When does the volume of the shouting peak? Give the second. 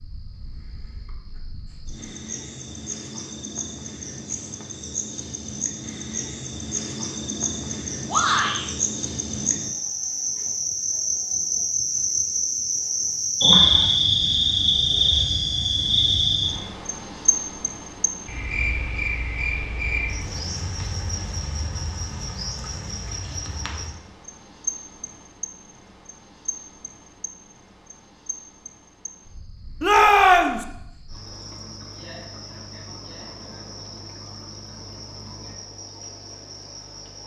30 s.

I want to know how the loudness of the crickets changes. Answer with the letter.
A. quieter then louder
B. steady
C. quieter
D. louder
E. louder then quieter
E.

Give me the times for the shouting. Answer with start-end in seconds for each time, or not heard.
8.1-8.7, 29.8-30.6.